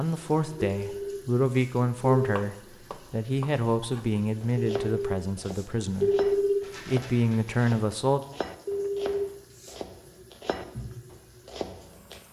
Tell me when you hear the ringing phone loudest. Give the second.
6 s.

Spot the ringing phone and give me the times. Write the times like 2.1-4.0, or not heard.
0.8-2.5, 4.6-6.7, 8.7-9.8.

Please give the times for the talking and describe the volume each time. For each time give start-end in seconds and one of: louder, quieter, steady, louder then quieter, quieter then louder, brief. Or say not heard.
0.0-8.2 quieter then louder.